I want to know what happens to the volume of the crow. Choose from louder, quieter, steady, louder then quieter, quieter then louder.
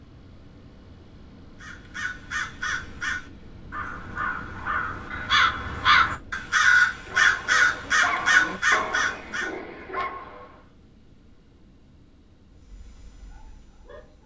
louder.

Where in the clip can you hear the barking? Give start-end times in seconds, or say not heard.
7.0-10.7, 12.6-14.2.